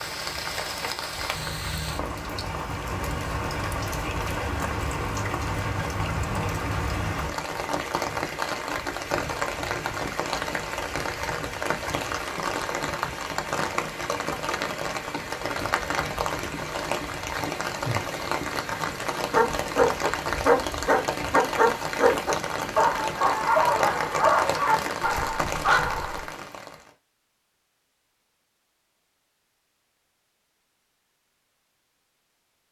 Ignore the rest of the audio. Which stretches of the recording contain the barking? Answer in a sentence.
The barking can be heard from 19.1 to 26.2 s.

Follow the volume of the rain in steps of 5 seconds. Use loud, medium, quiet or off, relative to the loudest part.
loud, loud, loud, loud, loud, loud, off.